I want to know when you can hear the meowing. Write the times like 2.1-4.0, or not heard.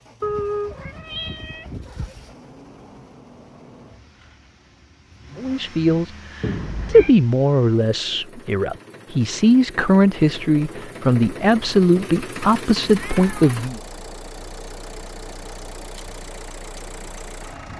0.2-2.4, 6.4-7.2, 12.8-13.4.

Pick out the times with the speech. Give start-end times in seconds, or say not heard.
5.3-13.8.